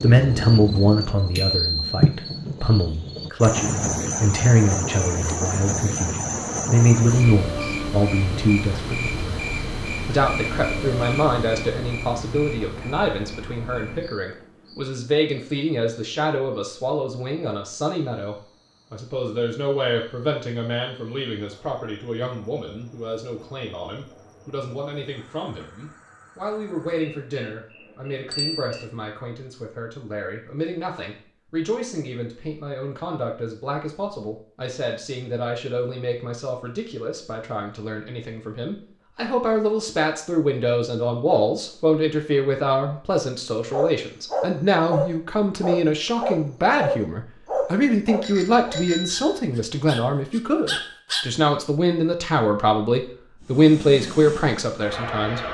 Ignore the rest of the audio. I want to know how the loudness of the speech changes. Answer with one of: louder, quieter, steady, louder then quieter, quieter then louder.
quieter then louder.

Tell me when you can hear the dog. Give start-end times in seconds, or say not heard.
43.7-51.2.